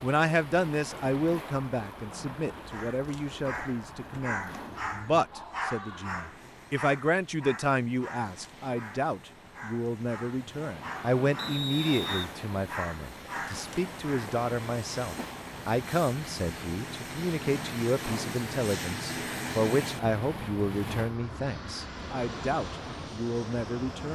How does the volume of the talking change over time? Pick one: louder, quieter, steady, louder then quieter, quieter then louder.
steady.